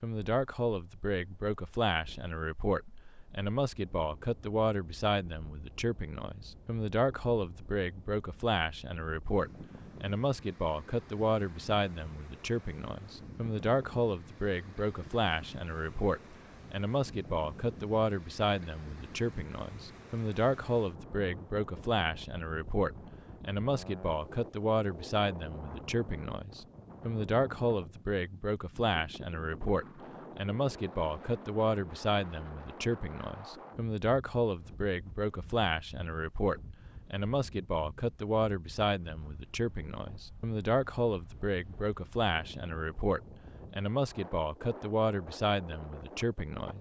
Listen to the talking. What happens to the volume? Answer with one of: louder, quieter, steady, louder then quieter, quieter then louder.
steady.